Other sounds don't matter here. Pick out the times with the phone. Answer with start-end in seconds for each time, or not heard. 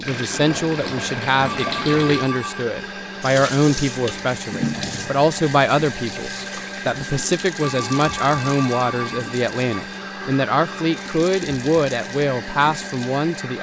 1.4-2.6, 7.6-9.8.